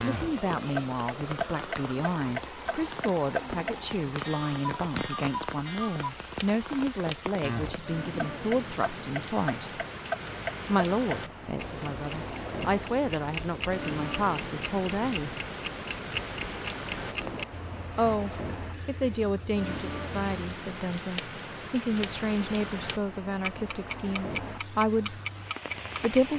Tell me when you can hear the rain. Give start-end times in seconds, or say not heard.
0.0-26.3.